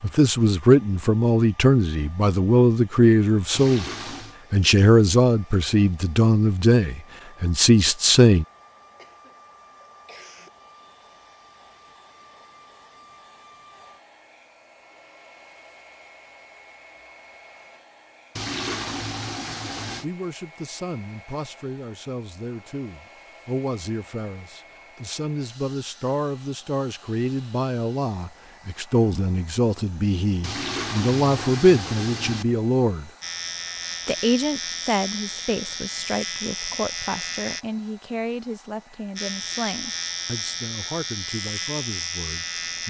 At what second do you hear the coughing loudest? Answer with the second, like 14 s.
10 s.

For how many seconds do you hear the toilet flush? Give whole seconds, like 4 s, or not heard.
5 s.